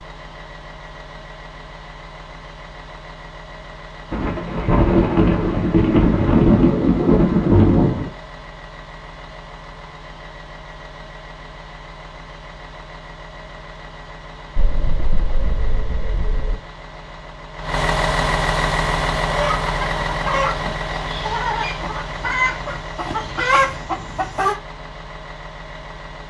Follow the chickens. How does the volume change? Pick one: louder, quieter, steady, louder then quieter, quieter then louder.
quieter then louder.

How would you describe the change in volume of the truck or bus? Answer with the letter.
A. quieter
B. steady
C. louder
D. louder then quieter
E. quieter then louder
D.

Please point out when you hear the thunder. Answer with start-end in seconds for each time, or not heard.
4.1-8.1, 14.6-16.6.